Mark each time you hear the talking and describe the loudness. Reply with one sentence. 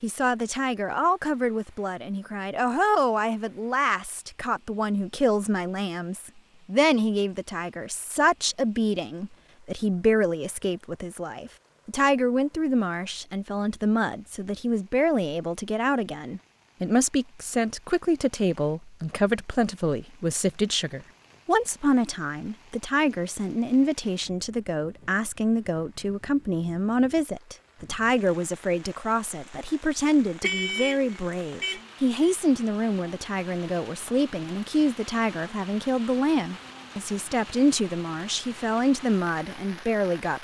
The talking can be heard from 0.0 to 40.4 s, at a steady volume.